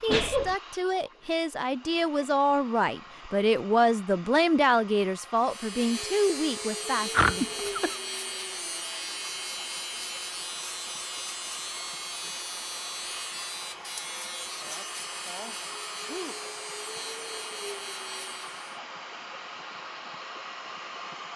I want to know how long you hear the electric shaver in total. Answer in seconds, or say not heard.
13 s.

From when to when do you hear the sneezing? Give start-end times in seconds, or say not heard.
0.1-0.6, 7.1-8.0, 14.6-16.4.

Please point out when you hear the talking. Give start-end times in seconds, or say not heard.
0.0-7.6.